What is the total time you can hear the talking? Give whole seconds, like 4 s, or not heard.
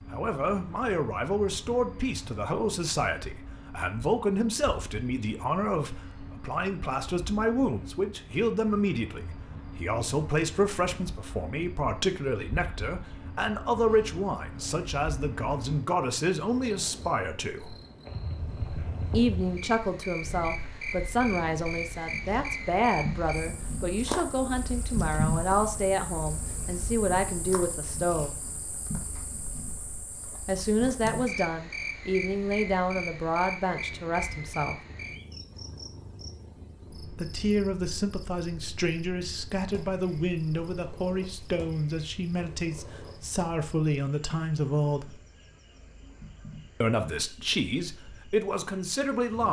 42 s.